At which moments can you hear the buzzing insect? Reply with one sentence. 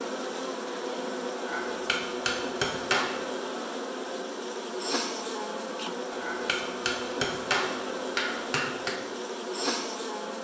You can hear the buzzing insect from 0.0 to 10.4 s.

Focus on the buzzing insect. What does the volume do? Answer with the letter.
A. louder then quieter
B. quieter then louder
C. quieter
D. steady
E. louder
D.